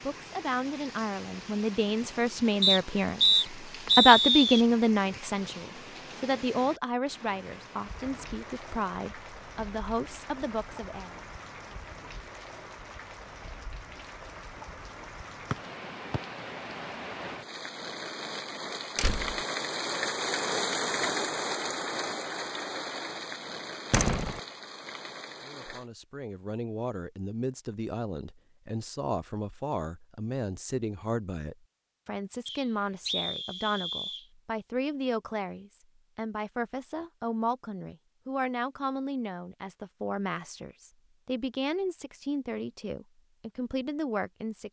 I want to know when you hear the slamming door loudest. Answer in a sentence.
The volume of the slamming door peaks at 24 seconds.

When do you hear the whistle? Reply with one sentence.
You can hear the whistle from 2.6 to 4.7 s, from 15.5 to 16.2 s and from 32.5 to 34.2 s.